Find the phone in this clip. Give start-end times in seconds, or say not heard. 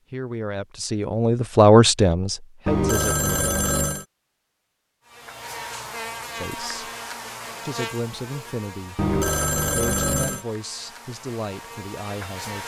2.6-4.0, 8.9-10.4.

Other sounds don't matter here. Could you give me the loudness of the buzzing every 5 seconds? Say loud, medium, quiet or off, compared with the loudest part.
off, loud, loud.